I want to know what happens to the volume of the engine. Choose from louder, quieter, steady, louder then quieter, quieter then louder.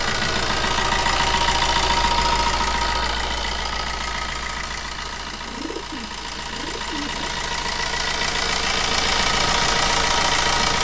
quieter then louder.